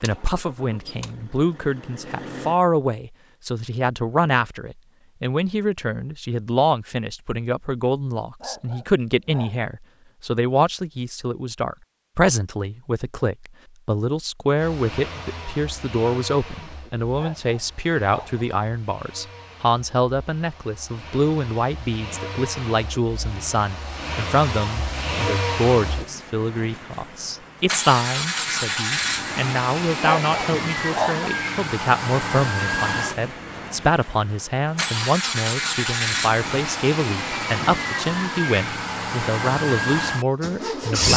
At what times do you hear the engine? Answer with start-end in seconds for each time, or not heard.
0.0-2.6, 14.6-41.1.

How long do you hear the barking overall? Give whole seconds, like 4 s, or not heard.
4 s.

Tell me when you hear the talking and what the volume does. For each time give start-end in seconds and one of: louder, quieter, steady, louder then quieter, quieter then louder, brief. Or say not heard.
0.0-41.1 steady.